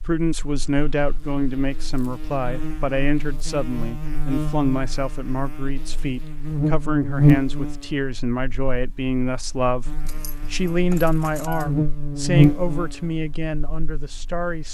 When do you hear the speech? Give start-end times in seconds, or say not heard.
0.0-14.6.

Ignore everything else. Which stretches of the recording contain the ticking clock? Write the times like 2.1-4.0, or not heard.
not heard.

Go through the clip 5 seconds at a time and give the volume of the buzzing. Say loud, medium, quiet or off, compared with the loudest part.
medium, loud, loud.